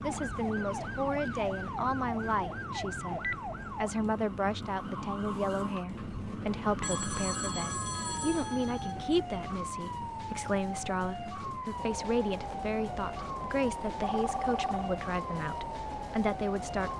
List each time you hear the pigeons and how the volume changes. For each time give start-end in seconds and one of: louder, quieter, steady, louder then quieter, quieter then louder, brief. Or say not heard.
not heard.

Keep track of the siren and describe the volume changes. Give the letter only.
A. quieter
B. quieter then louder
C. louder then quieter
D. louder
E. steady
E.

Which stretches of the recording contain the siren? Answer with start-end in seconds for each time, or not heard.
0.0-16.9.